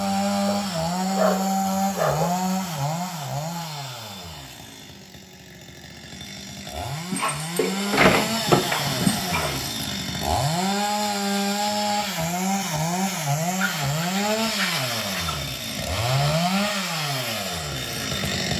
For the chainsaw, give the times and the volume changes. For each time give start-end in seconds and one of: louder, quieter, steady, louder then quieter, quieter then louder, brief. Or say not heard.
0.0-18.5 quieter then louder.